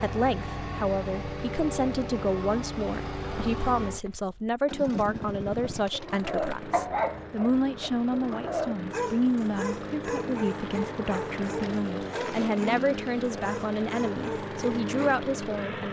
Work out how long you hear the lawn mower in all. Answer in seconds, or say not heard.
16 s.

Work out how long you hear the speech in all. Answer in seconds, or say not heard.
16 s.